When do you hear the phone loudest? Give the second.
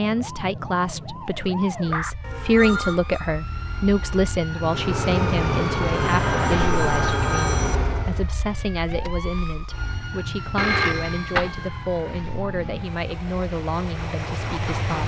11 s.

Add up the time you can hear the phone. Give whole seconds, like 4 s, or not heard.
4 s.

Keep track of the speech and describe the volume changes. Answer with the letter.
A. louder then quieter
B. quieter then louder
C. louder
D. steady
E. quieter
E.